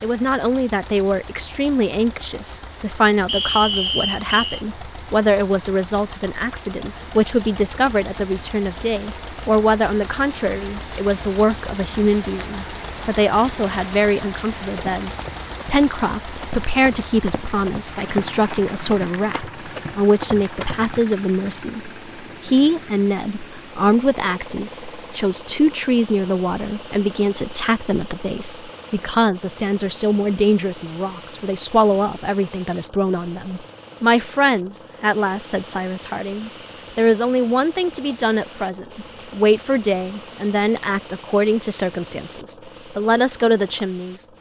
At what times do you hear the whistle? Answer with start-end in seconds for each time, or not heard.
3.2-4.7.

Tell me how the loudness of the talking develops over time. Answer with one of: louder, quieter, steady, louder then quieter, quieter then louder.
steady.